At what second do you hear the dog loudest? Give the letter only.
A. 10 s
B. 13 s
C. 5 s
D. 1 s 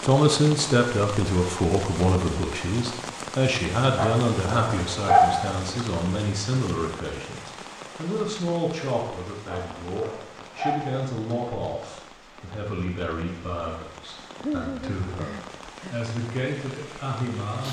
C.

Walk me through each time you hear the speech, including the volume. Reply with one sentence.
The speech can be heard from 0.0 to 17.6 s, getting quieter.